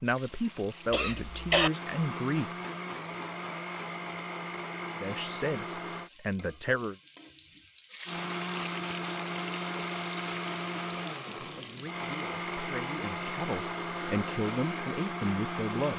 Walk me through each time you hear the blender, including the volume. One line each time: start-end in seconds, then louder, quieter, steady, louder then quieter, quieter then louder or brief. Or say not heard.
0.2-6.1 louder
8.1-15.9 steady.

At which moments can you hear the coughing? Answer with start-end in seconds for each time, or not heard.
0.9-1.7.